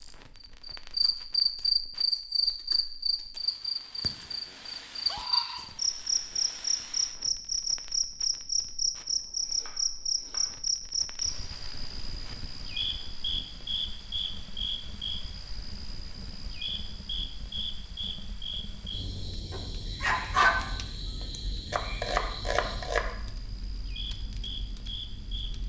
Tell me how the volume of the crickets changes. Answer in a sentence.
The volume of the crickets goes down.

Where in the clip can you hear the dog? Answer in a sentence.
The dog can be heard from 19.5 to 20.6 s.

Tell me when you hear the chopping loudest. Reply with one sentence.
The volume of the chopping peaks at 22 seconds.